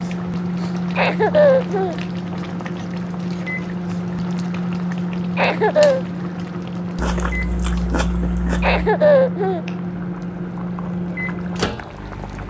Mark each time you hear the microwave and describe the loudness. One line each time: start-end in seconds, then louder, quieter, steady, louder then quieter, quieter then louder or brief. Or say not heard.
0.0-12.4 steady.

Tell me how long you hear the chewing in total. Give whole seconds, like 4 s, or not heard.
2 s.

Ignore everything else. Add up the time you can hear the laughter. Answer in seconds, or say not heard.
3 s.